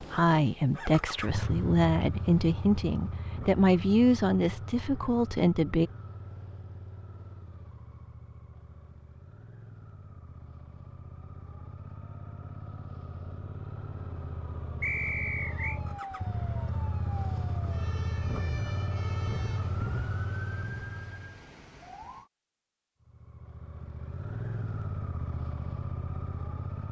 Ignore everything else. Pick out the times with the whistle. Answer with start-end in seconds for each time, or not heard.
14.8-15.8.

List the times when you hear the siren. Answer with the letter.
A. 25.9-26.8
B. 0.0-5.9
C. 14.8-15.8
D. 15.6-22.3
D.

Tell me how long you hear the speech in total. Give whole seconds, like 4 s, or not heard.
6 s.